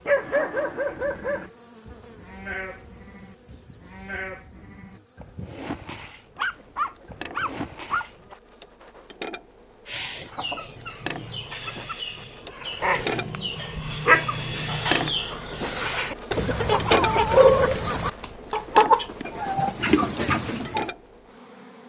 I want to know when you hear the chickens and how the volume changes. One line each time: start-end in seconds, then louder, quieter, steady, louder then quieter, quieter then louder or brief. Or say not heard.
9.8-20.9 louder.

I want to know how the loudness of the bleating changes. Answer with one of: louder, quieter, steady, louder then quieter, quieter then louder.
quieter then louder.